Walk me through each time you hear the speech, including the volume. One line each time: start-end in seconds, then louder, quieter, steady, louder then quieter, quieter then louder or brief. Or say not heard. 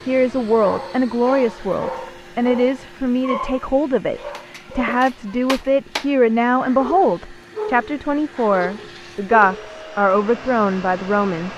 0.1-11.5 steady.